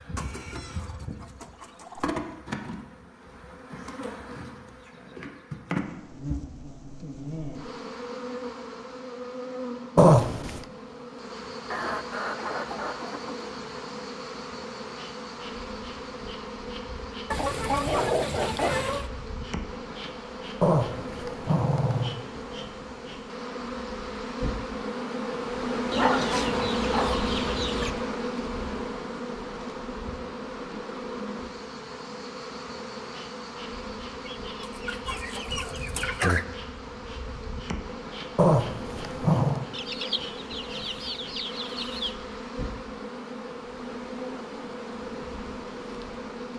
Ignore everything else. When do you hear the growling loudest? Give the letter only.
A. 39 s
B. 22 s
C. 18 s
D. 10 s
D.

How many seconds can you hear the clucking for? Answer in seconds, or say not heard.
12 s.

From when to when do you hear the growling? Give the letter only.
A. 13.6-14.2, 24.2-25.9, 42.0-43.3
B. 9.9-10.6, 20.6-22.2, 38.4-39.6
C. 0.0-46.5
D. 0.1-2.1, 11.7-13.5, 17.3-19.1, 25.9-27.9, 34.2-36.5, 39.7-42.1
B.